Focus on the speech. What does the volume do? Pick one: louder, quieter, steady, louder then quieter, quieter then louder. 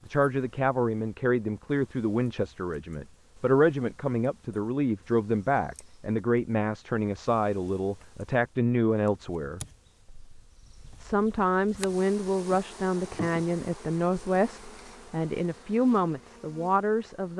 steady.